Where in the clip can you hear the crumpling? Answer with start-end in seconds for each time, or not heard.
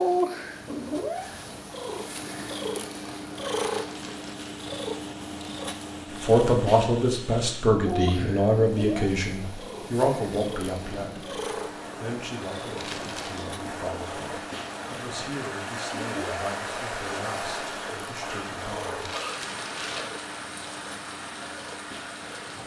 3.6-4.6, 12.8-13.5, 19.0-20.1.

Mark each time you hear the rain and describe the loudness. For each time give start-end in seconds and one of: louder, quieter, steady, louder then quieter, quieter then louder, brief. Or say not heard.
0.0-22.6 louder.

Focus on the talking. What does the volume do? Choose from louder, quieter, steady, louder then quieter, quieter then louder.
quieter.